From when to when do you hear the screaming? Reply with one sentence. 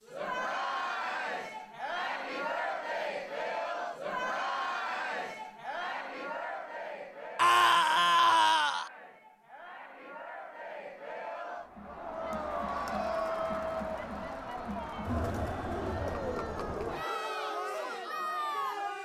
The screaming can be heard from 7.3 to 8.9 s.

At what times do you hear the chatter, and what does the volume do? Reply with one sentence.
The chatter can be heard from 0.0 to 18.9 s, getting quieter then louder.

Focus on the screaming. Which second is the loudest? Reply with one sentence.
The loudest moment of the screaming is at 8 seconds.